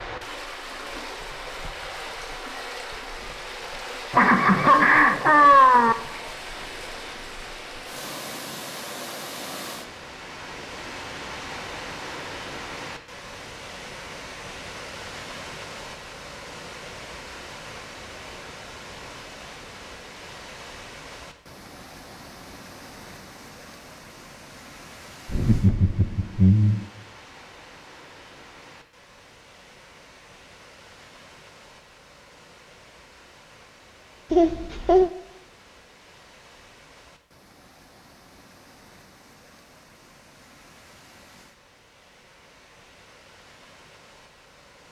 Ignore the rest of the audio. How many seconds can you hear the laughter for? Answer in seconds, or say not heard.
4 s.